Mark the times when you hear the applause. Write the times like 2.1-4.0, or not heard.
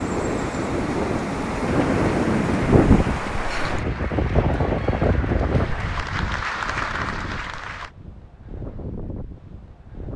1.6-7.9.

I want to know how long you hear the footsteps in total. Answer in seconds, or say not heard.
not heard.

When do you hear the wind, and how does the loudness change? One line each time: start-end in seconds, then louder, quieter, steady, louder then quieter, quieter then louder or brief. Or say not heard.
0.0-10.1 quieter.